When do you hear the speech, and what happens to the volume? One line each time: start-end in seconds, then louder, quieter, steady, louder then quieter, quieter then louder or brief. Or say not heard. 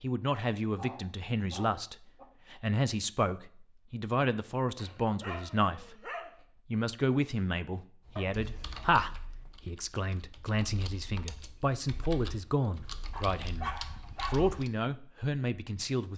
0.0-16.1 steady.